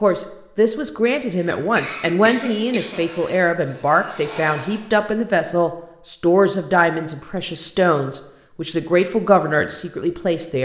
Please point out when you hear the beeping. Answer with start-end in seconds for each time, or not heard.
not heard.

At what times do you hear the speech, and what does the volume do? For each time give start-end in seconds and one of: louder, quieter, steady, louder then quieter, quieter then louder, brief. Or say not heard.
0.0-10.6 steady.